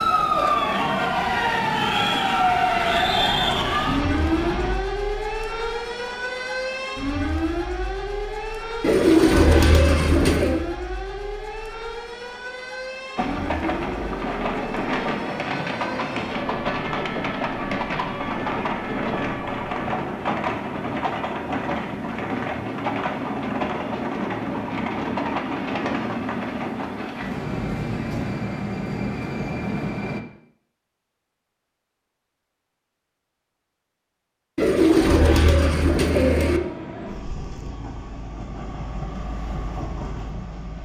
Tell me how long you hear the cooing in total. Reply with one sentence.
You can hear the cooing for 4 seconds altogether.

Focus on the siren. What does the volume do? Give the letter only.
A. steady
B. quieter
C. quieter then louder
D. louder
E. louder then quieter
B.